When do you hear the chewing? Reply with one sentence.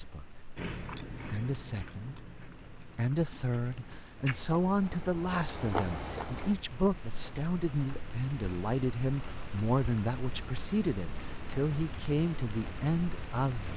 You can hear the chewing from 0.6 to 6.5 s.